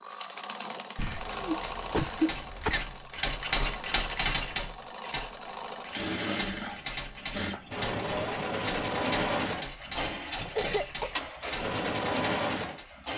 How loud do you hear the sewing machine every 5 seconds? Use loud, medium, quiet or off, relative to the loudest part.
medium, loud, loud.